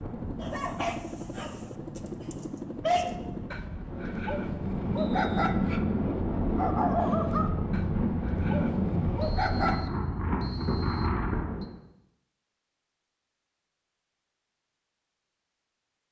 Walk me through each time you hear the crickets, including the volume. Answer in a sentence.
The crickets can't be heard in this clip.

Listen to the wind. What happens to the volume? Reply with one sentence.
The volume of the wind goes up.